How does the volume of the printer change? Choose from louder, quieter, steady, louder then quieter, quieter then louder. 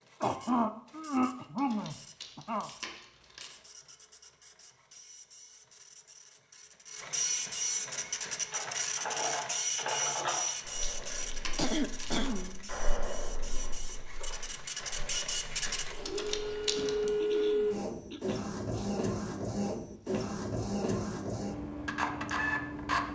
louder.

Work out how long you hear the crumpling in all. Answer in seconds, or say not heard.
5 s.